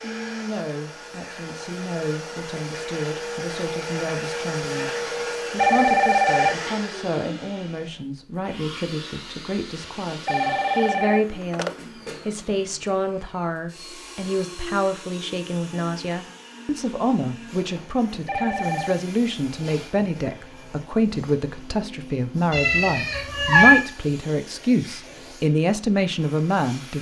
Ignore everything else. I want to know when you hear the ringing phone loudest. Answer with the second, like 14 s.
6 s.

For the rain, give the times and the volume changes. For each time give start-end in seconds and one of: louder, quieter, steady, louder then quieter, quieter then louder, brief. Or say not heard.
not heard.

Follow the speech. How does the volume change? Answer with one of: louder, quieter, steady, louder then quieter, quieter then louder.
louder.